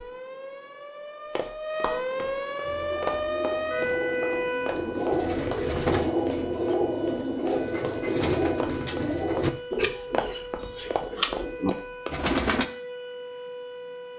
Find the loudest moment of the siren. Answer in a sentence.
The volume of the siren peaks at 4 seconds.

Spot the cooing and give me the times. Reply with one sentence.
You can hear the cooing from 2.6 to 12.7 s.